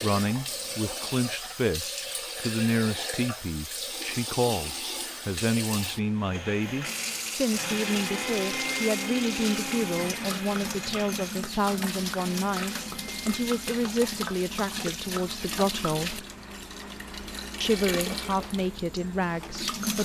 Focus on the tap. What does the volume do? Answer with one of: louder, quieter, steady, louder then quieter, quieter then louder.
steady.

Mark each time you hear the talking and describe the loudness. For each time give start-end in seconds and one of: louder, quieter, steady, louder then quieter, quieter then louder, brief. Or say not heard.
0.0-16.2 steady
17.6-19.9 brief.